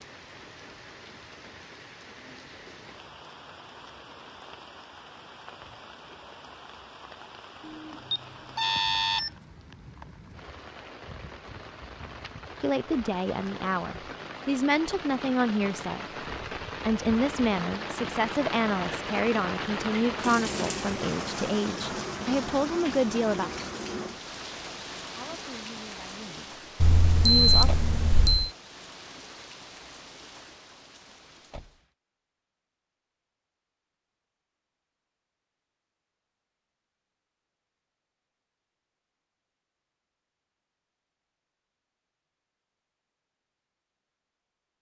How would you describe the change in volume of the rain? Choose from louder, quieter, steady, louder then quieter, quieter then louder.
louder then quieter.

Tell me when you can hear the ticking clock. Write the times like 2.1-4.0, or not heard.
not heard.